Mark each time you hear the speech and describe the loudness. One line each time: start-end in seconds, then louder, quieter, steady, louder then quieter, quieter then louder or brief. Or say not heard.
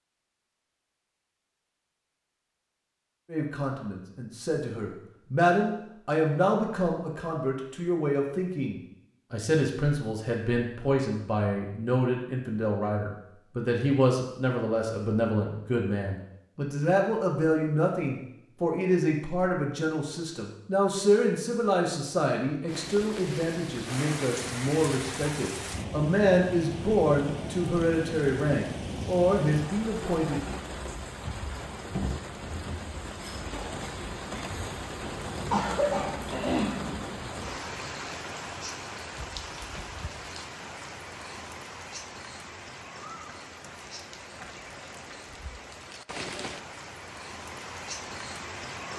3.3-30.4 steady.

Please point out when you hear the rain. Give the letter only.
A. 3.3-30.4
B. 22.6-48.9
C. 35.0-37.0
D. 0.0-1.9
B.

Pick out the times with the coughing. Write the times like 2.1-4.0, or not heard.
35.0-37.0.